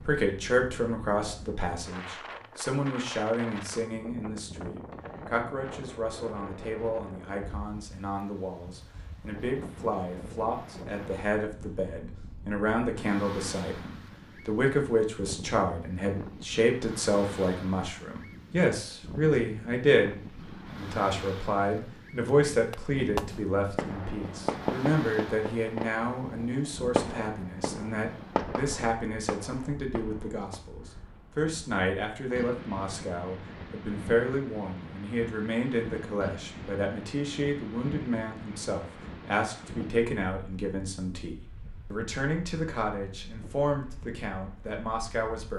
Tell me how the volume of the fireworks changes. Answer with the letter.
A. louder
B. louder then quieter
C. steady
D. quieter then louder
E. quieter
E.